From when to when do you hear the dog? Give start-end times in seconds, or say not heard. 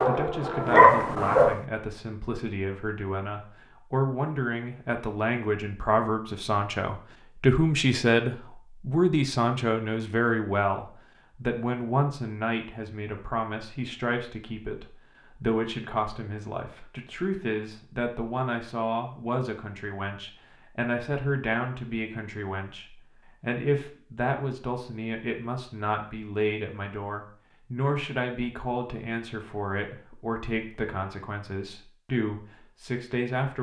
0.0-1.6.